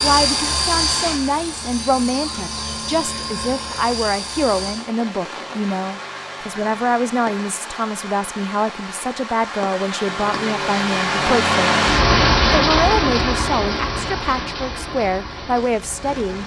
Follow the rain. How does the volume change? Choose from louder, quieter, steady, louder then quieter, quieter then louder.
louder then quieter.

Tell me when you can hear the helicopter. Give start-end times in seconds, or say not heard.
0.0-4.9.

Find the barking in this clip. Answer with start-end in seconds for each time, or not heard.
not heard.